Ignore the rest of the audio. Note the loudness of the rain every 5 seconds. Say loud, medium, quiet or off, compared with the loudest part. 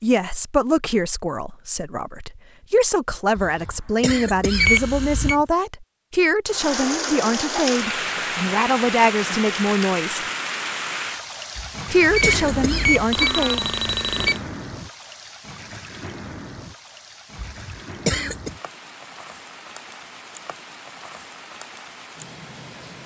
off, loud, medium, quiet, quiet.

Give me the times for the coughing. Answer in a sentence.
The coughing can be heard from 3.4 to 5.5 s, from 11.6 to 13.0 s and from 17.4 to 18.6 s.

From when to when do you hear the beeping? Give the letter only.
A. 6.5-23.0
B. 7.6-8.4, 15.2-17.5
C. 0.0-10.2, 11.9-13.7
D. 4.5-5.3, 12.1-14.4
D.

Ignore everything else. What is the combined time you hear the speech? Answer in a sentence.
You can hear the speech for 12 seconds altogether.